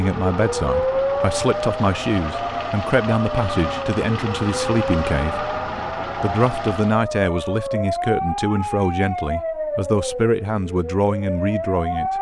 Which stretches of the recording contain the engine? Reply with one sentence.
You can hear the engine from 0.0 to 7.0 s.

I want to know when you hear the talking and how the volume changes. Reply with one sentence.
The talking can be heard from 0.0 to 12.1 s, at a steady volume.